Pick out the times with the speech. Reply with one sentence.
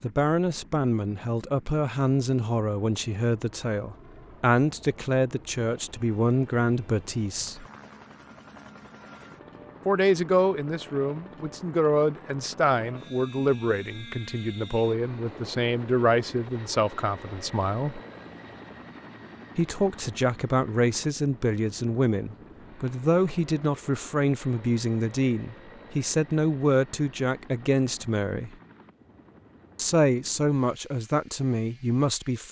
The speech can be heard from 0.0 to 7.7 s, from 9.8 to 18.0 s, from 19.6 to 28.6 s and from 29.8 to 32.4 s.